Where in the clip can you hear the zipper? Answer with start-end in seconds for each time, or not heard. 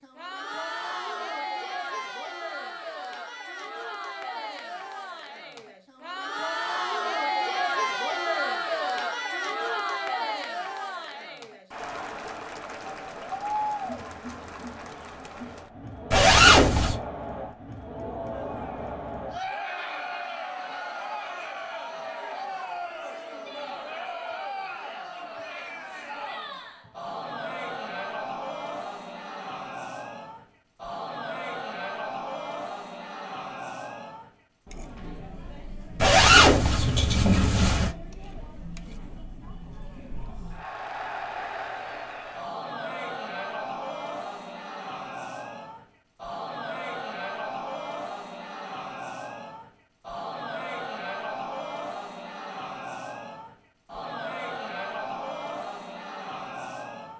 16.1-17.0, 36.0-37.9.